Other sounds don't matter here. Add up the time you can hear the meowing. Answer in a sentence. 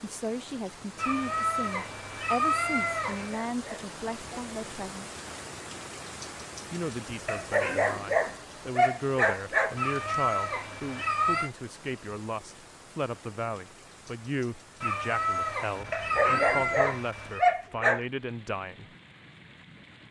The meowing can be heard for 7 seconds in total.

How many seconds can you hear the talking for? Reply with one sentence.
The talking can be heard for 17 seconds in total.